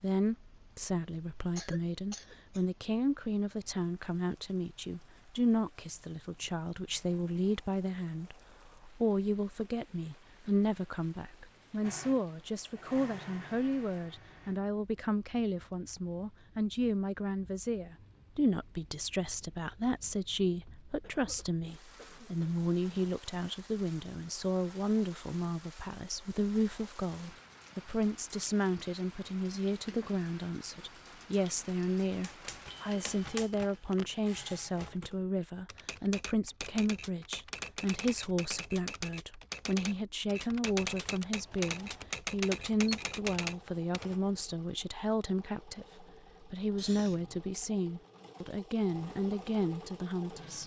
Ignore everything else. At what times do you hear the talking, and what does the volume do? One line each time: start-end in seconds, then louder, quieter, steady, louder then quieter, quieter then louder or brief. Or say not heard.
0.0-50.6 steady.